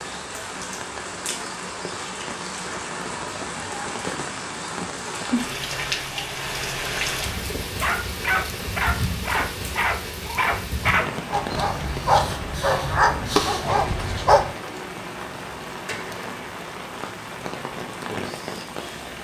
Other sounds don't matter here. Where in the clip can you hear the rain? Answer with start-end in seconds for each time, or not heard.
0.0-19.1.